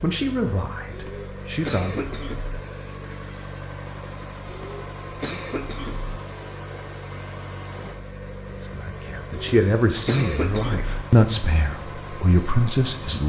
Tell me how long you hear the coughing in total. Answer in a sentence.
You can hear the coughing for 5 seconds altogether.